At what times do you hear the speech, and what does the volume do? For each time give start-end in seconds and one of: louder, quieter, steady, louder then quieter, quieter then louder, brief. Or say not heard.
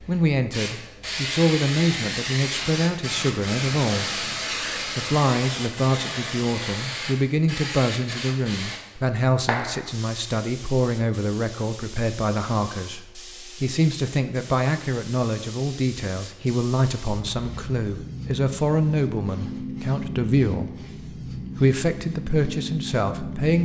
0.0-23.6 steady.